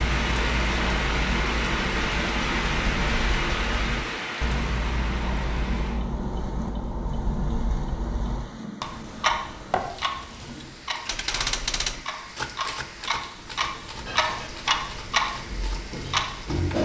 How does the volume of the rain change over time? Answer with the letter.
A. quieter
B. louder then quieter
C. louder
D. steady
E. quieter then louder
A.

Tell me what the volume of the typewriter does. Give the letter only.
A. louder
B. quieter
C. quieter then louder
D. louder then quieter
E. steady
B.